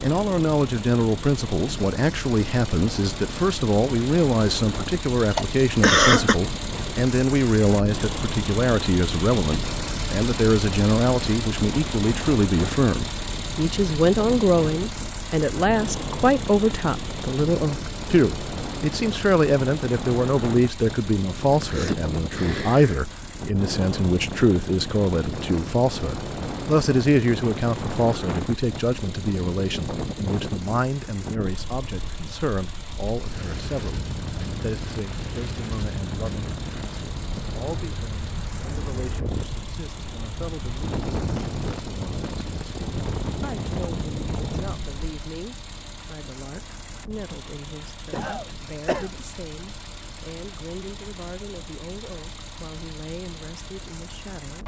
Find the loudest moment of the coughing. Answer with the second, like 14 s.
6 s.